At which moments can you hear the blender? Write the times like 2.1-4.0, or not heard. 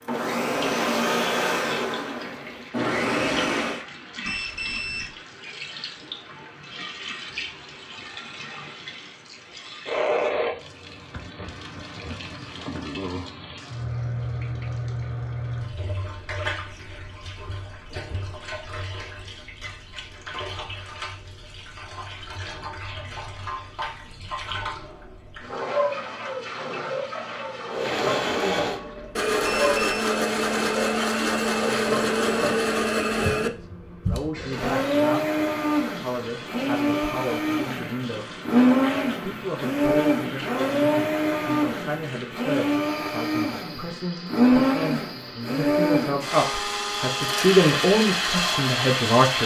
0.1-3.9, 27.7-49.4.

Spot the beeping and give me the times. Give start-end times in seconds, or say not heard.
4.2-5.1, 29.4-30.1.